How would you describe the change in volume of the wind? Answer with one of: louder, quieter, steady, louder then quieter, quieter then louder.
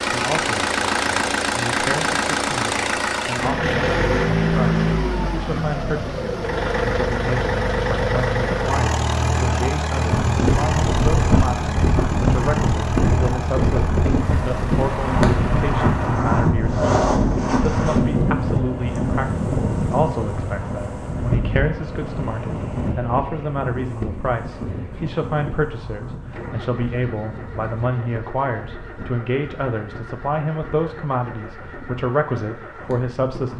quieter.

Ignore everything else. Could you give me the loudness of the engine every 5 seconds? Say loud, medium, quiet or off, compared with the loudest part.
loud, loud, medium, medium, quiet, quiet, quiet.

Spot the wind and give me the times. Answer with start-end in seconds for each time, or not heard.
10.1-33.5.